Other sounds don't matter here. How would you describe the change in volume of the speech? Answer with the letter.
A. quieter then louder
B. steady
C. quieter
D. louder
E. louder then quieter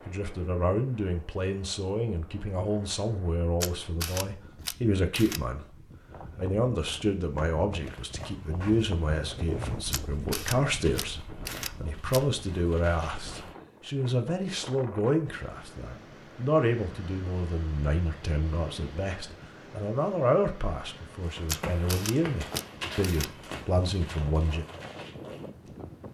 B.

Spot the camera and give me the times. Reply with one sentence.
You can hear the camera from 3.6 to 5.4 s, from 9.9 to 12.2 s and from 21.4 to 23.3 s.